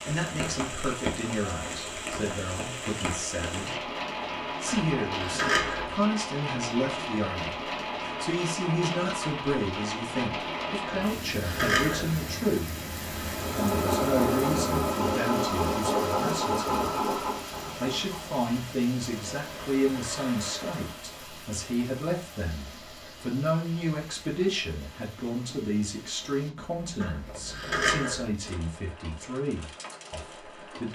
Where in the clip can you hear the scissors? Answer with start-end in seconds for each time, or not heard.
4.7-6.0, 10.8-12.2, 27.0-28.3.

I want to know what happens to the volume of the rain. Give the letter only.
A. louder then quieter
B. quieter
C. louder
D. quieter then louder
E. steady
B.